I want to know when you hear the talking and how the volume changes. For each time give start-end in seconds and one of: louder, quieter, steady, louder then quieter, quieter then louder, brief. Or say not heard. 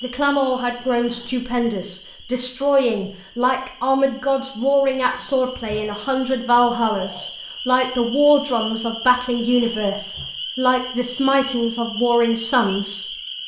0.0-13.1 steady.